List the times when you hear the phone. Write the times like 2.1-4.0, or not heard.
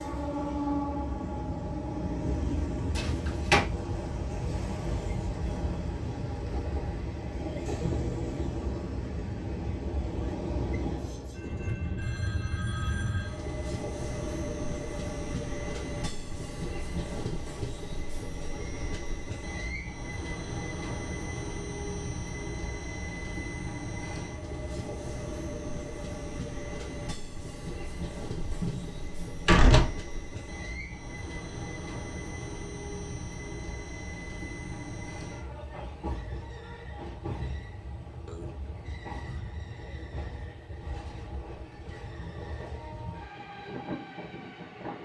11.5-13.4.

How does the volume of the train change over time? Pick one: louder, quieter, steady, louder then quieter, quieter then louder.
quieter.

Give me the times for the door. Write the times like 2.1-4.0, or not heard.
3.0-3.6, 28.4-29.9.